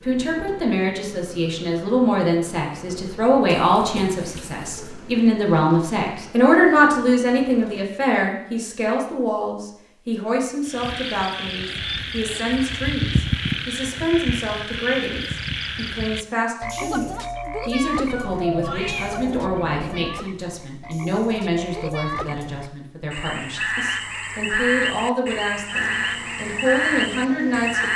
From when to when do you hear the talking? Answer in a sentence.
You can hear the talking from 0.0 to 27.9 s.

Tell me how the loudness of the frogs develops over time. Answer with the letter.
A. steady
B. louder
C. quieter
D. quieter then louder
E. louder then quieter
D.